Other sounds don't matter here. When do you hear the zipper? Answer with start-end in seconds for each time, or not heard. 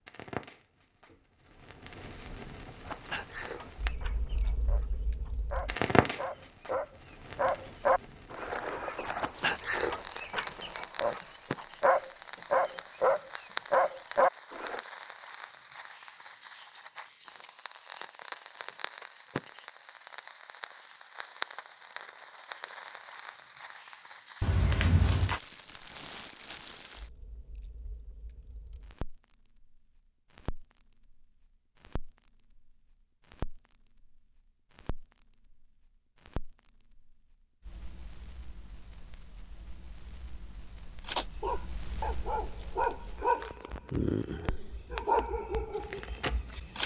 24.4-25.4.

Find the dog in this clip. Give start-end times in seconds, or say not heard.
2.9-14.8, 41.0-46.8.